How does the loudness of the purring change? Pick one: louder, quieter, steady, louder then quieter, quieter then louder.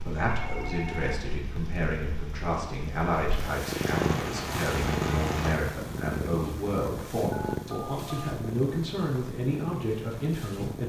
louder then quieter.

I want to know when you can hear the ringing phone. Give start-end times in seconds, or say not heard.
0.2-1.2, 7.3-8.3.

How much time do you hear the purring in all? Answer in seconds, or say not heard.
11 s.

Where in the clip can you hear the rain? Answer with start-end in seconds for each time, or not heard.
0.0-5.6.